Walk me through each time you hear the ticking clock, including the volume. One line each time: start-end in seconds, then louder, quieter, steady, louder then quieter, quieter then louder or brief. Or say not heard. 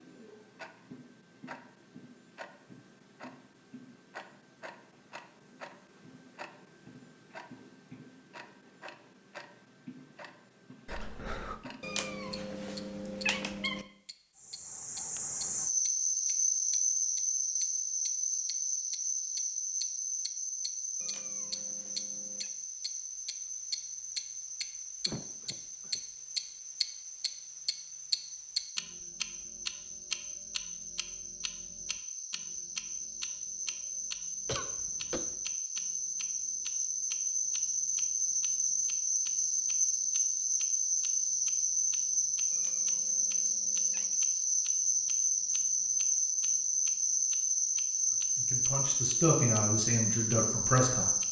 0.0-49.6 louder then quieter
50.3-51.2 brief.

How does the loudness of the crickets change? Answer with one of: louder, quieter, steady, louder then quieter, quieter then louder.
quieter then louder.